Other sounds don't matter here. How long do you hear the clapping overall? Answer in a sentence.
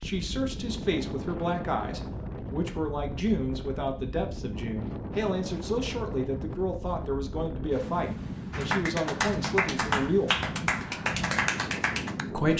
The clapping can be heard for 4 seconds in total.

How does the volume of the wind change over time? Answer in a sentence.
The loudness of the wind stays about the same.